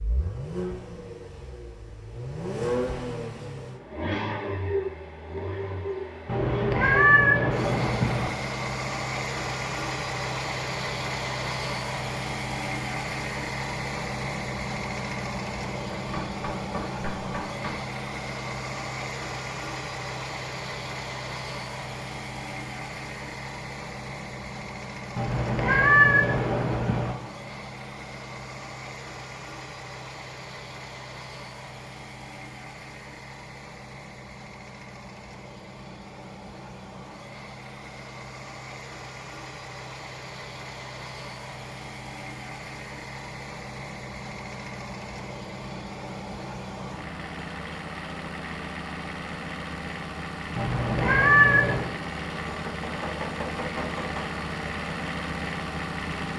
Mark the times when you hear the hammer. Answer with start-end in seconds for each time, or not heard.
15.9-17.9, 52.5-54.2.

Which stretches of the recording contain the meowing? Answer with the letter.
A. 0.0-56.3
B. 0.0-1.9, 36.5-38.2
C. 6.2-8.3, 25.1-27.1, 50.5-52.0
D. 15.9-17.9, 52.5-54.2
C.